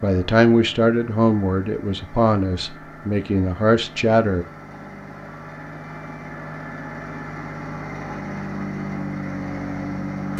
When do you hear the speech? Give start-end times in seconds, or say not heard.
0.0-4.5.